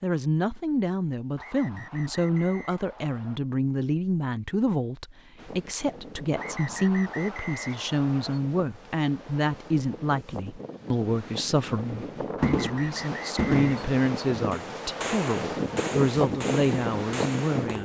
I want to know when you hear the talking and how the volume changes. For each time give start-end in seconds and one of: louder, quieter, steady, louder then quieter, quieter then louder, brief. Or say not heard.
0.0-17.8 steady.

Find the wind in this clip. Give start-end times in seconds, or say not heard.
5.3-17.8.